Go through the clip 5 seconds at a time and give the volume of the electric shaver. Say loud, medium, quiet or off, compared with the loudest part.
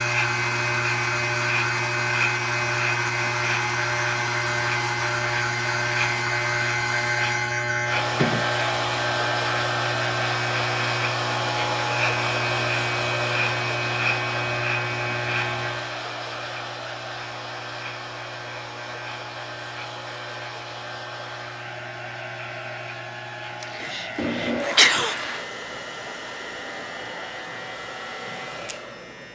loud, loud, loud, medium, quiet, quiet.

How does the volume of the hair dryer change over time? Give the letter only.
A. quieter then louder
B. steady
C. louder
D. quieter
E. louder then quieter
D.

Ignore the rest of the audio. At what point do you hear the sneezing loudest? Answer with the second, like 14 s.
25 s.